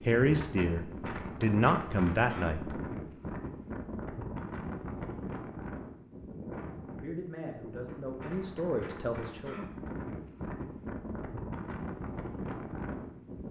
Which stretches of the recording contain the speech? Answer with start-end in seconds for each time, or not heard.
0.0-2.8, 7.0-9.7.